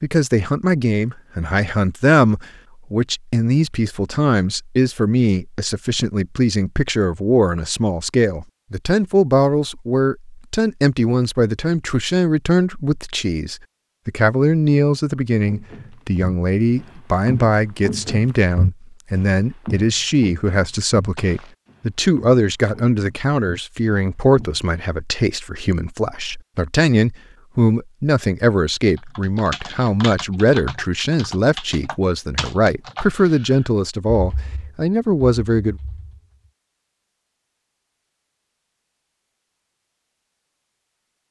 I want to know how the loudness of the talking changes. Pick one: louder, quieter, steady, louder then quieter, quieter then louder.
steady.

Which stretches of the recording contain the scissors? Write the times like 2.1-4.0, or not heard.
not heard.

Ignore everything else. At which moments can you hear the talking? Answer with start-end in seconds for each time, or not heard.
0.0-35.8.